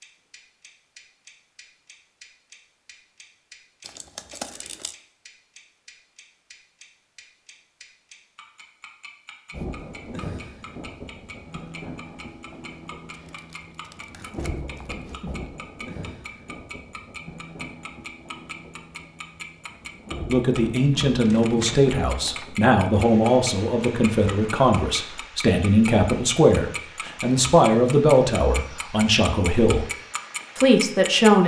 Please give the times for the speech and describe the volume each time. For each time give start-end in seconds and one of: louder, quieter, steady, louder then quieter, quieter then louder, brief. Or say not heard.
20.3-29.9 steady
30.6-31.4 brief.